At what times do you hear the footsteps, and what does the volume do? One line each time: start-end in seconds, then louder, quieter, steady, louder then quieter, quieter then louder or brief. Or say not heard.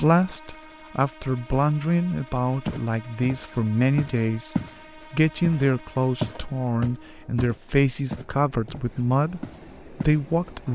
2.6-4.8 brief
5.4-10.2 quieter then louder.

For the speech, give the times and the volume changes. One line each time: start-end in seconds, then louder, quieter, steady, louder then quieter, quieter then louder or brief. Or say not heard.
0.0-10.7 steady.